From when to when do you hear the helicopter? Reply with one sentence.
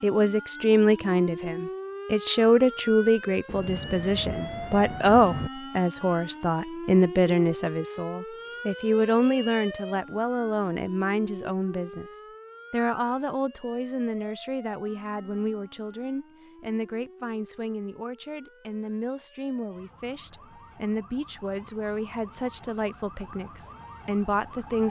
The helicopter can't be heard in this clip.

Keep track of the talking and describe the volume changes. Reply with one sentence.
The loudness of the talking goes down.